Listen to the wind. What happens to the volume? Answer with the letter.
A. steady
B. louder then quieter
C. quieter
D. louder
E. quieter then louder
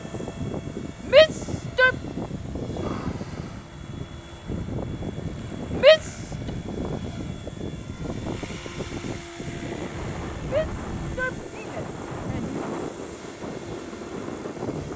A.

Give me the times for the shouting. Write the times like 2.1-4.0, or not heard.
1.1-1.9, 5.8-6.3, 10.5-12.6.